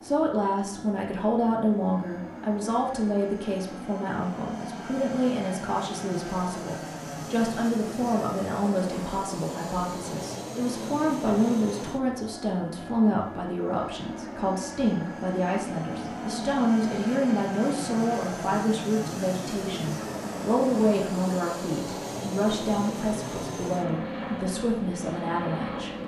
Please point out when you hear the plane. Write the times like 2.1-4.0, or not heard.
0.0-26.0.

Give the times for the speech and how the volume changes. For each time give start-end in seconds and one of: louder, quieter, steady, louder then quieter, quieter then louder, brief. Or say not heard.
0.0-25.9 steady.